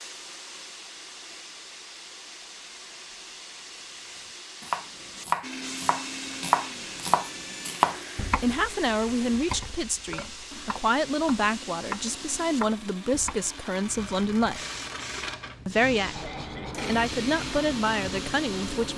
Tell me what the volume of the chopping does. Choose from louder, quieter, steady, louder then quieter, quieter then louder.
quieter then louder.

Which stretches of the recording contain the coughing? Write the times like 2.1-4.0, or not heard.
16.1-16.9.